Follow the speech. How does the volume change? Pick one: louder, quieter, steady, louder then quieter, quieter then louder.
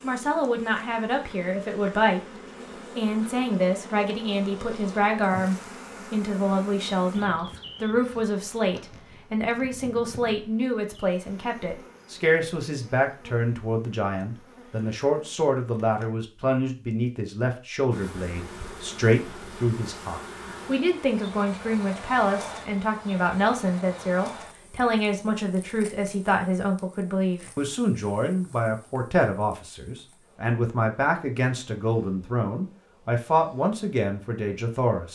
steady.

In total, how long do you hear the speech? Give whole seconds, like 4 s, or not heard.
35 s.